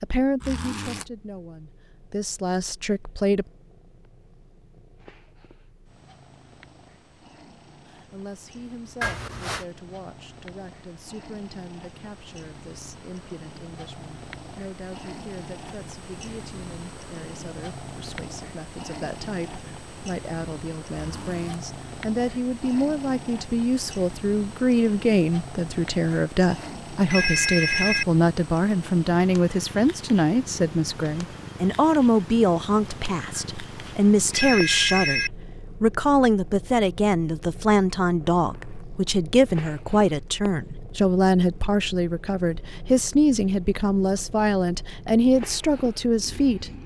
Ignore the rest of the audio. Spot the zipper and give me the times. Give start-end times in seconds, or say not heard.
0.4-1.1, 20.9-21.6, 38.4-38.9.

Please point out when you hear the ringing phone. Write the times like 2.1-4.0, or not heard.
9.0-9.7, 26.1-28.1, 33.3-35.3.